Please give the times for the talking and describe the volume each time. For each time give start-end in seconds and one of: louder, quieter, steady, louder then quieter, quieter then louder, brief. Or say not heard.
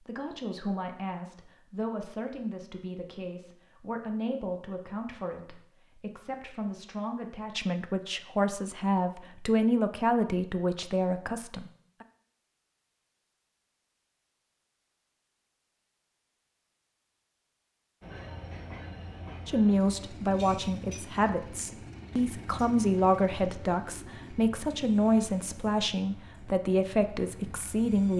0.0-12.1 louder
19.4-28.1 steady.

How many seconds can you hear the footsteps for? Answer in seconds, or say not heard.
not heard.